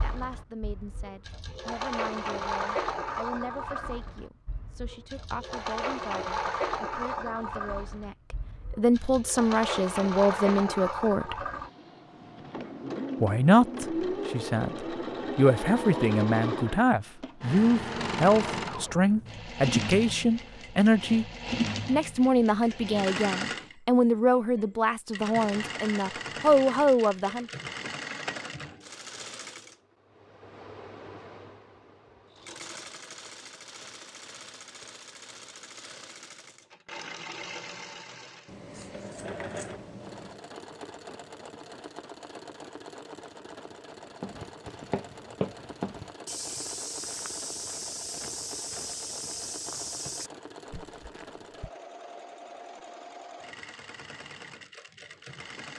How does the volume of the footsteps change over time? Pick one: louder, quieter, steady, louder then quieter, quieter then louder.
quieter.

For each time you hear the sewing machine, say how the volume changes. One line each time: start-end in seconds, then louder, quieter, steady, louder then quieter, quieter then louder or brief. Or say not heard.
0.0-55.7 quieter.